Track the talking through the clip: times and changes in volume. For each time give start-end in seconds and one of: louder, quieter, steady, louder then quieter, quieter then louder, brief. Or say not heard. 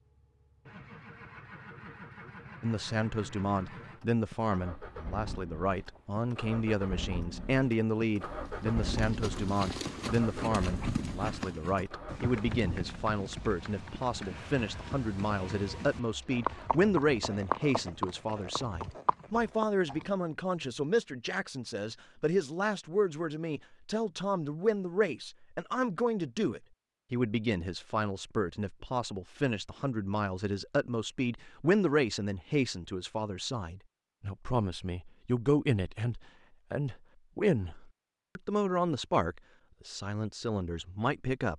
2.6-41.5 steady.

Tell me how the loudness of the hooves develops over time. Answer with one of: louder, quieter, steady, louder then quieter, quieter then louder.
quieter then louder.